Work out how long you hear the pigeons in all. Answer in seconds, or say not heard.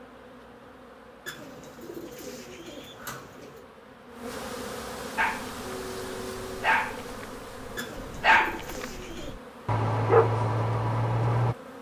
4 s.